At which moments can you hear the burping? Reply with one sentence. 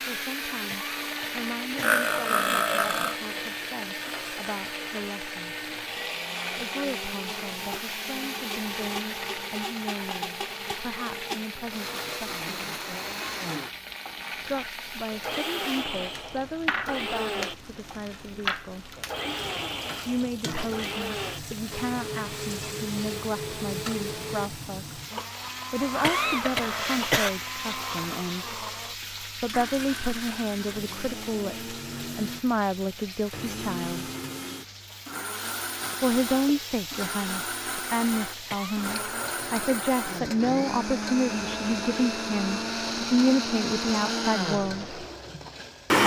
The burping can be heard from 1.8 to 3.1 s and from 25.9 to 27.1 s.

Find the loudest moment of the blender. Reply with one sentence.
The volume of the blender peaks at 46 seconds.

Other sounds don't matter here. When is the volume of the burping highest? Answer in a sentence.
The loudest moment of the burping is at 2 seconds.